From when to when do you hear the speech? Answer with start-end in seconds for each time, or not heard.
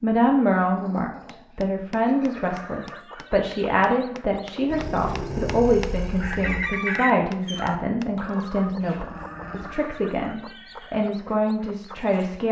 0.0-12.4.